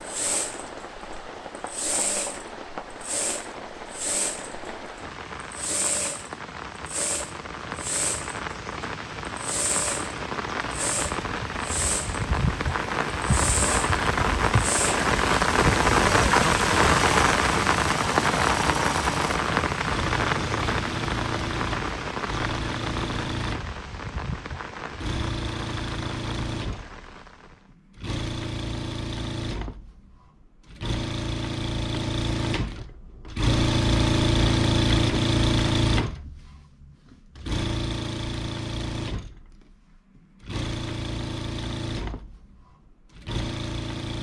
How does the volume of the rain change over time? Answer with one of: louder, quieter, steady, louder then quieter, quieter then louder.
louder then quieter.